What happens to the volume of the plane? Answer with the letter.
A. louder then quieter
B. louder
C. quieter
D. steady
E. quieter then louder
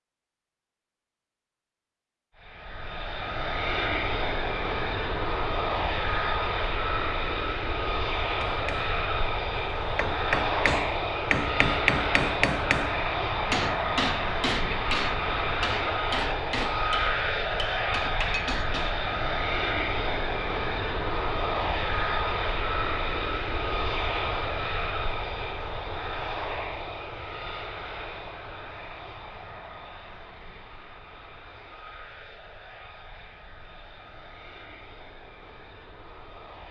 C.